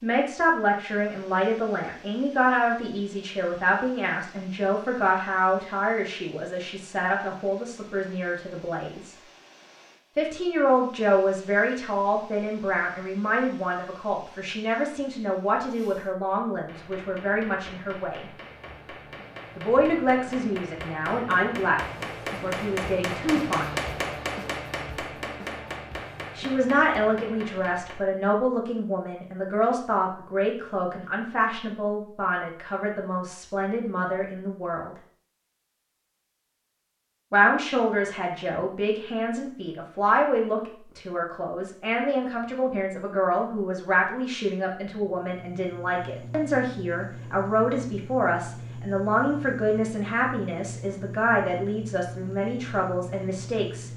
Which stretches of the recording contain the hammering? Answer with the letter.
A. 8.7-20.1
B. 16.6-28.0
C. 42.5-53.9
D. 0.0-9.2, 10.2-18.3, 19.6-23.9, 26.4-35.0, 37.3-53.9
B.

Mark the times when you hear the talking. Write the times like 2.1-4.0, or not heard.
0.0-9.2, 10.2-18.3, 19.6-23.9, 26.4-35.0, 37.3-53.9.